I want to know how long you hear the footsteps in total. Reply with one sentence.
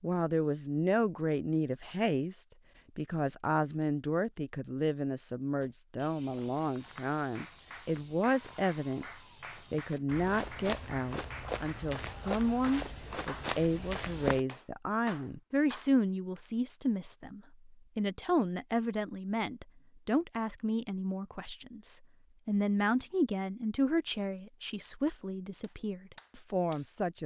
You can hear the footsteps for 9 seconds altogether.